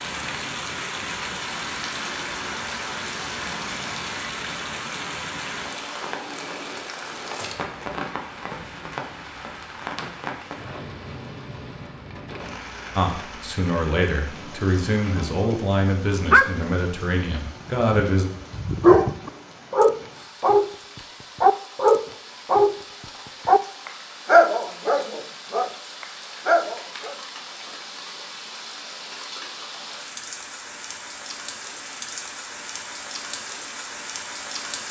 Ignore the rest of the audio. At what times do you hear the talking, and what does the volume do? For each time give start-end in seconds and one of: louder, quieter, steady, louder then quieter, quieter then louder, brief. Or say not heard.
12.9-18.2 steady.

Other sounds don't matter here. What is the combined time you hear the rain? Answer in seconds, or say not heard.
35 s.